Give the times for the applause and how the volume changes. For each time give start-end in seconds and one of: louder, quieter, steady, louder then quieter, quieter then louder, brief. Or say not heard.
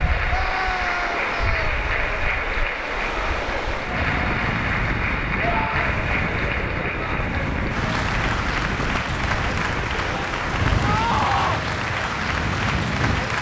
0.0-13.3 steady.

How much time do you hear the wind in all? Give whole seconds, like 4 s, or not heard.
13 s.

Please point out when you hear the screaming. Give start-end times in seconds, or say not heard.
0.2-1.8, 5.3-6.0, 10.8-11.6.